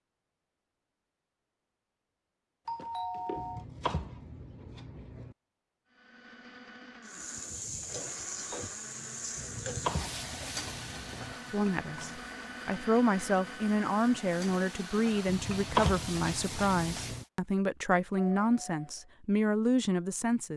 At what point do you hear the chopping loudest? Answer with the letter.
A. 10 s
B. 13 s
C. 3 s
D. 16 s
D.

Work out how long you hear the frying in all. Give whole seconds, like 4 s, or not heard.
10 s.